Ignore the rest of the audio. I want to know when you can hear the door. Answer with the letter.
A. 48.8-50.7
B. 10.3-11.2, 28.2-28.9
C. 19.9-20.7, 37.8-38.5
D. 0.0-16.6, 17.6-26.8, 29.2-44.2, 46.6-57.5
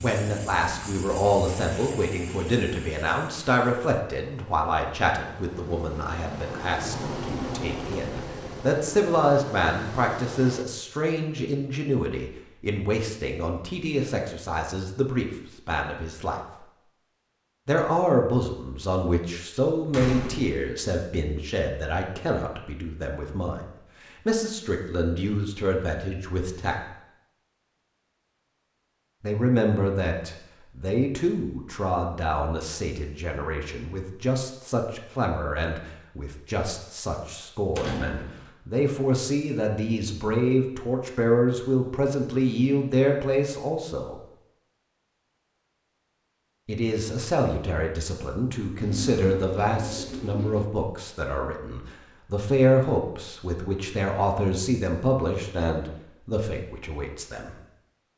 C.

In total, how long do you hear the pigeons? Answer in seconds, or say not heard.
2 s.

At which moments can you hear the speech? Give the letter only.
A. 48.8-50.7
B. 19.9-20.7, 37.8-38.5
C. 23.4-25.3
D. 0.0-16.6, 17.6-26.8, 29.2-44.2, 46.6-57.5
D.